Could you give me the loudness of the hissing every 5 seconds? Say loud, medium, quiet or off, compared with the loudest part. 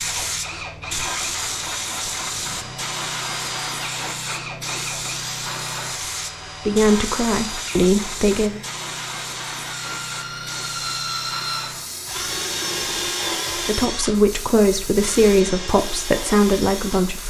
loud, loud, medium, medium.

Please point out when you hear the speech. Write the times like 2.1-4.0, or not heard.
6.7-8.6, 13.7-17.2.